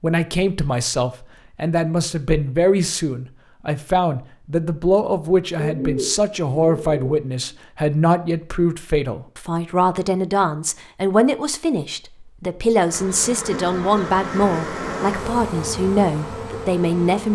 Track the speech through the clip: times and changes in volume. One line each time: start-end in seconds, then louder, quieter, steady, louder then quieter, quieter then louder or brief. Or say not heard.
0.0-17.2 steady.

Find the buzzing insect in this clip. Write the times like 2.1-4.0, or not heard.
12.8-17.2.